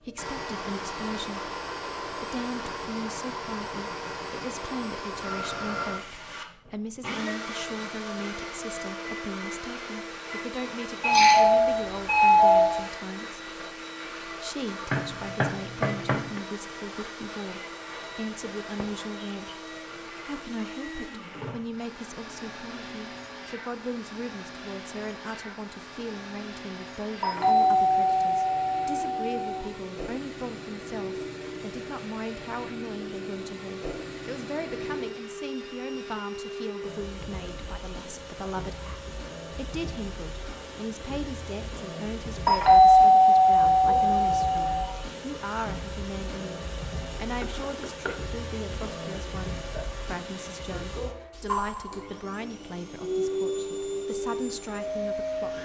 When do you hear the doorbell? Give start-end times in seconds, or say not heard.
11.0-12.8, 27.2-29.6, 42.5-44.9.